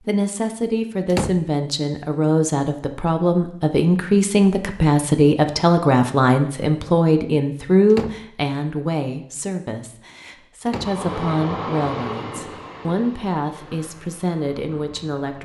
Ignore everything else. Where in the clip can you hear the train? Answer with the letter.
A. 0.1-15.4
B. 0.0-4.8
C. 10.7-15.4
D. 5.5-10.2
C.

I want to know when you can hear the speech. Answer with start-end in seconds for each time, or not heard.
0.1-15.4.